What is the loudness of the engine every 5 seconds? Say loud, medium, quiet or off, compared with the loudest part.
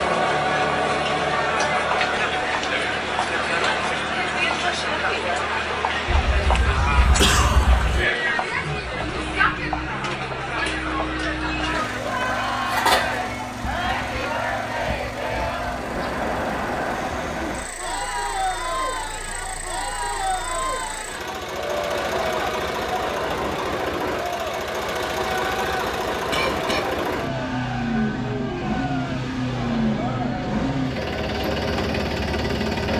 medium, medium, medium, medium, loud, loud, loud.